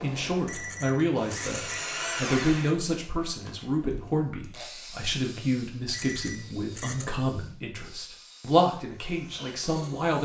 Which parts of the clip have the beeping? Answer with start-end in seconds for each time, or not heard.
0.5-1.9, 5.9-7.1.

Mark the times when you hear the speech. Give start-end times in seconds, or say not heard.
0.0-10.2.